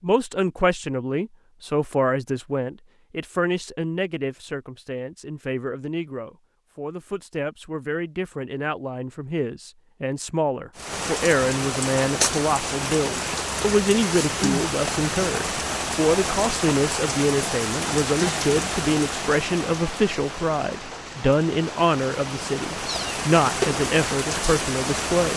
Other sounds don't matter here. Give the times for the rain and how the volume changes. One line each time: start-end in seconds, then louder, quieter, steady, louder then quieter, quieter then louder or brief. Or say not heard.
10.8-25.3 quieter then louder.